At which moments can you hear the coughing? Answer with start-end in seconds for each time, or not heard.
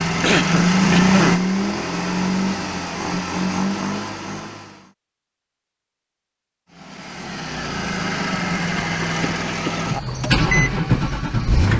0.2-1.4, 8.8-9.9.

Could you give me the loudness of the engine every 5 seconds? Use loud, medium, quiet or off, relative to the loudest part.
loud, medium, loud.